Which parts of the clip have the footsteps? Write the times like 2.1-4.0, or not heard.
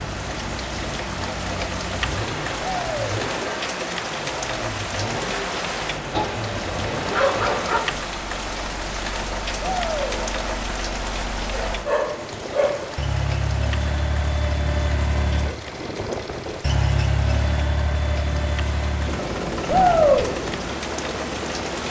not heard.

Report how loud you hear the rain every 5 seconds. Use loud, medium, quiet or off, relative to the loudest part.
loud, loud, loud, medium, loud.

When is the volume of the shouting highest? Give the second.
20 s.